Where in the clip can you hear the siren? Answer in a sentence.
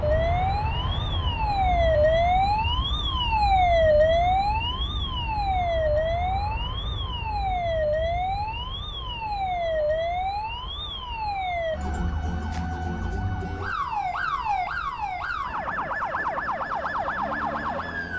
You can hear the siren from 0.0 to 18.1 s.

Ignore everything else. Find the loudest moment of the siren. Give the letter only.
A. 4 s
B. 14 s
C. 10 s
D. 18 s
A.